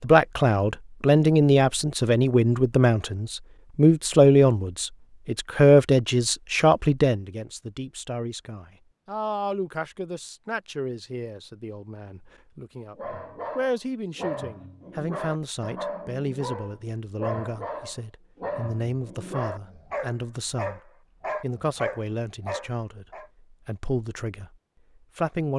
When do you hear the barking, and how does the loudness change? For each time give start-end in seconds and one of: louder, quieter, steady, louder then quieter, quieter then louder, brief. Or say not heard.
12.9-23.3 steady.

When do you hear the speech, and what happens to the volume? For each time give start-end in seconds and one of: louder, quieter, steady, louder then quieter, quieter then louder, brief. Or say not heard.
0.0-25.5 quieter.